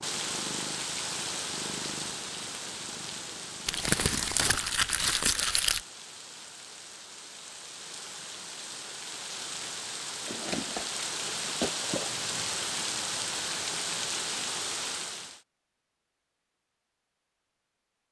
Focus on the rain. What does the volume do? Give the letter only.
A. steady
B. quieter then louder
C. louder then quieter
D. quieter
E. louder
B.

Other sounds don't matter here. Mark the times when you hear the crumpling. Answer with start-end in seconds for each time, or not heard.
3.6-5.8, 10.2-12.2.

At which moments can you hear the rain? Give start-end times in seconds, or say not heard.
0.0-15.4.